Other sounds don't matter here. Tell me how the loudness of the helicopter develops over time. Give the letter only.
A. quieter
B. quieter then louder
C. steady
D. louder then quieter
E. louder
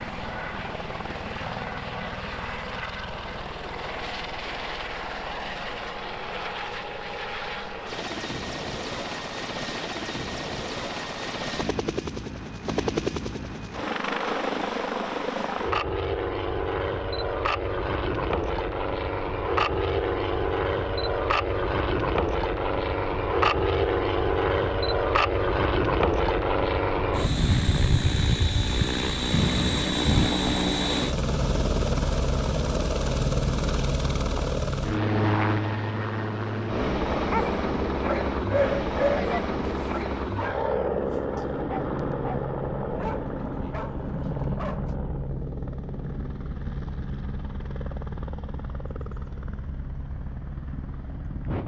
D.